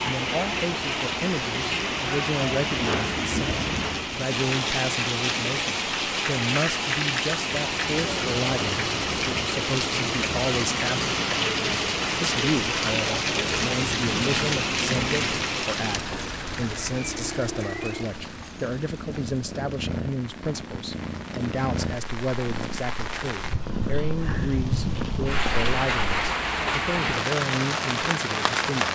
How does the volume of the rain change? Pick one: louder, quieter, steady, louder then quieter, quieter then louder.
quieter then louder.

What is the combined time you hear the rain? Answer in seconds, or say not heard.
29 s.